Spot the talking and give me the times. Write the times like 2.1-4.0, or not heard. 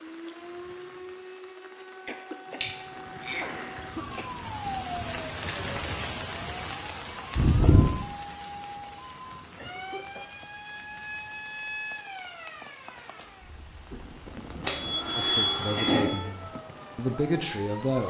15.2-18.0.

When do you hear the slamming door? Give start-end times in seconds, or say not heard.
not heard.